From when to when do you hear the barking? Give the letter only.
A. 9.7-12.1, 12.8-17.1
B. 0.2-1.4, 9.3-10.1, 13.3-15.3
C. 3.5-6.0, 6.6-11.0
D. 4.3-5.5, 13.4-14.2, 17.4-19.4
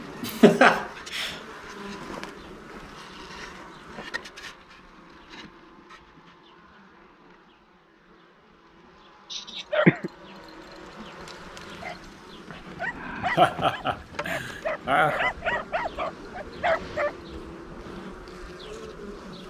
A.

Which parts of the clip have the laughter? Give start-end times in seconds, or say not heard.
0.2-1.4, 9.3-10.1, 13.3-15.3.